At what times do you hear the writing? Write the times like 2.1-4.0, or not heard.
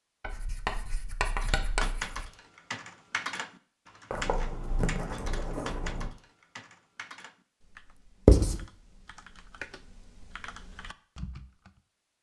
0.2-2.3, 4.1-6.1, 8.2-8.7.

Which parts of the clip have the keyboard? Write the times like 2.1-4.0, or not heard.
1.2-11.7.